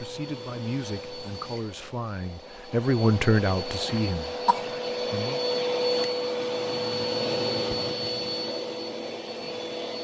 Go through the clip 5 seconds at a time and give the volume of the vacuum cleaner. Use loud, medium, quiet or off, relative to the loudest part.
medium, loud.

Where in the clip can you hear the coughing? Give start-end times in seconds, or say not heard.
3.9-4.7.